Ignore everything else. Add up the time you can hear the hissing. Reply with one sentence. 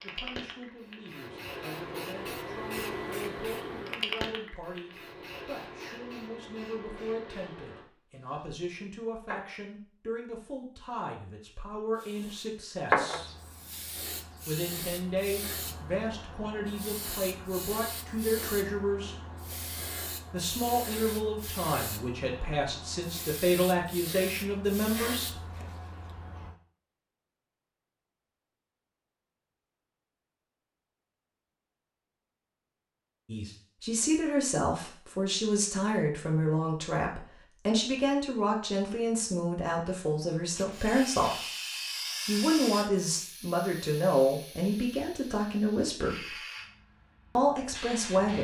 The hissing can be heard for 32 seconds in total.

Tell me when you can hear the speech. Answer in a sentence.
You can hear the speech from 0.0 to 13.3 s, from 14.4 to 19.1 s, from 20.3 to 25.6 s, from 33.2 to 41.4 s, from 42.2 to 46.4 s and from 47.4 to 48.3 s.